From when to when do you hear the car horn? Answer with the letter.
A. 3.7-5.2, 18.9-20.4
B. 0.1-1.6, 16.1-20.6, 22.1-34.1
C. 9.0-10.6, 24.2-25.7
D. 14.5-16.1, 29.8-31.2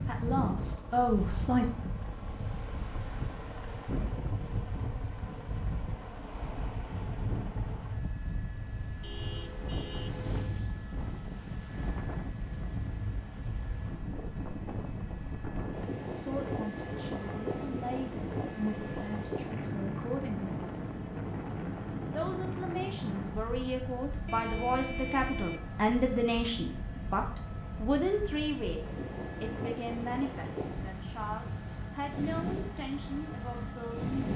C.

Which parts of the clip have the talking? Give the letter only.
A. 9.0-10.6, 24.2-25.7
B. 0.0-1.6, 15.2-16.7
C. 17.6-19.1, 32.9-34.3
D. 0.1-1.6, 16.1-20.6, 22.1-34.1
D.